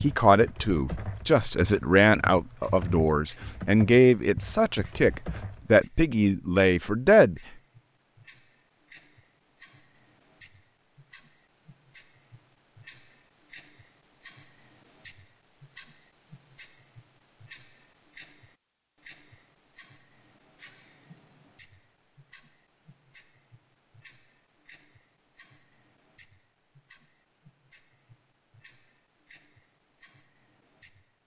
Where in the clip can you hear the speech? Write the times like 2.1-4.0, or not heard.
0.0-7.4.